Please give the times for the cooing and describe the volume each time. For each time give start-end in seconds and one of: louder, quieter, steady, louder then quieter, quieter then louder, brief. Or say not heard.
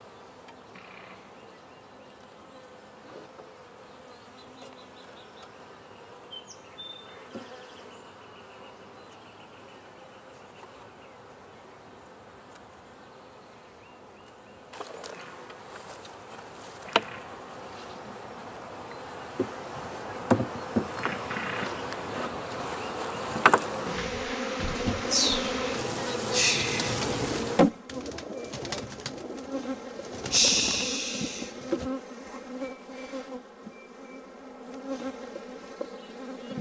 24.8-31.9 quieter then louder.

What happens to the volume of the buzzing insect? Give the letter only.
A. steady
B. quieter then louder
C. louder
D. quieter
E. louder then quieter
E.